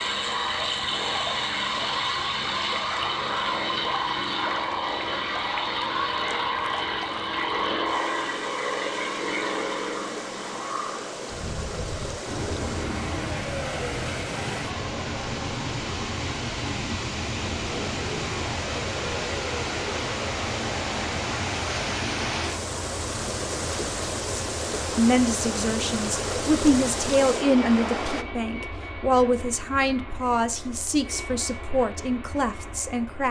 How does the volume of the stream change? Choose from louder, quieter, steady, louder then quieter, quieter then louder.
louder.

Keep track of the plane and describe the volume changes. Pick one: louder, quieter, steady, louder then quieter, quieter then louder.
quieter.